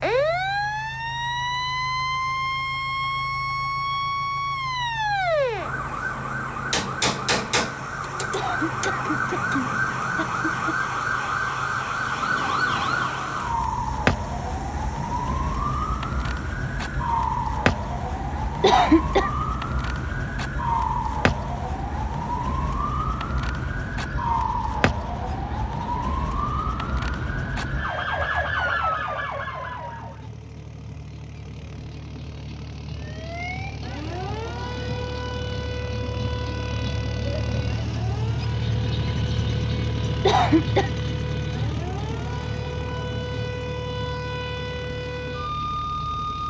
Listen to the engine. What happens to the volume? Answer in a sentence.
The loudness of the engine goes up.